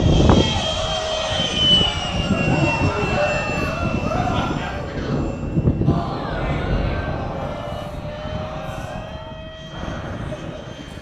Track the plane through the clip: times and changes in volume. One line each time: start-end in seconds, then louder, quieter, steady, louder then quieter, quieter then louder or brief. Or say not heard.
0.0-10.9 quieter.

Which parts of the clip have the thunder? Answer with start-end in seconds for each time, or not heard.
4.5-7.6.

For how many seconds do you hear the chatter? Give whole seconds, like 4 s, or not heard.
11 s.